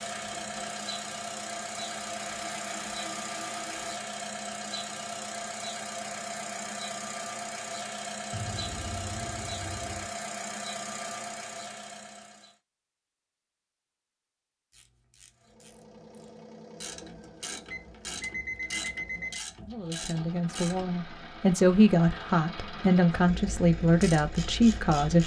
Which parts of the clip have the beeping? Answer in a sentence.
The beeping can be heard from 8.3 to 10.1 s and from 17.7 to 19.4 s.